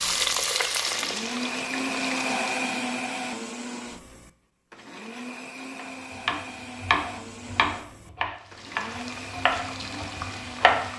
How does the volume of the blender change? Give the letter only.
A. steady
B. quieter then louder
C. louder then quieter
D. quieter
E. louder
D.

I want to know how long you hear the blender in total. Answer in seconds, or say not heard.
11 s.